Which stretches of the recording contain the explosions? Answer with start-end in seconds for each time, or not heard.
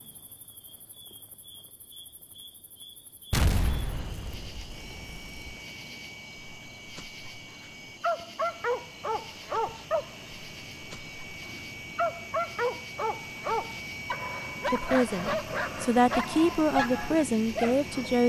3.3-5.5.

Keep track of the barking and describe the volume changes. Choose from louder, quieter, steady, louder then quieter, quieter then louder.
steady.